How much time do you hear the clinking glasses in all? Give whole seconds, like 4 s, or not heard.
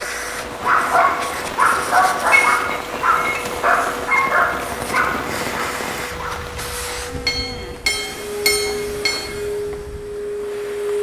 3 s.